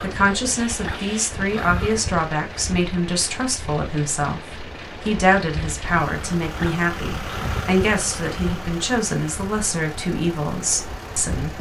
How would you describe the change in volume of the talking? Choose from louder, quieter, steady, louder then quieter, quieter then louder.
steady.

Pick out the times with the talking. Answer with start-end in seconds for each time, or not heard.
0.0-11.5.